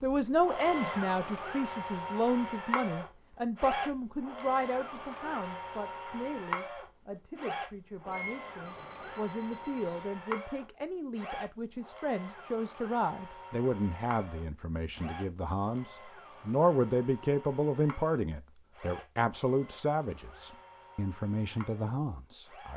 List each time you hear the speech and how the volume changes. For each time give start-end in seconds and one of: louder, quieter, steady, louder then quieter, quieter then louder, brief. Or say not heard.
0.0-22.7 quieter then louder.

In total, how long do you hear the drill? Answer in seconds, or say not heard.
23 s.